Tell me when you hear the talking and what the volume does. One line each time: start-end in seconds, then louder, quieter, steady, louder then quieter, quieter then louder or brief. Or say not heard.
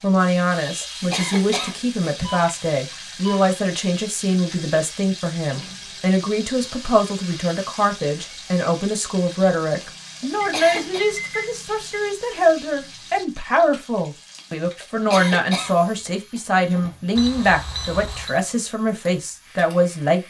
0.0-20.2 steady.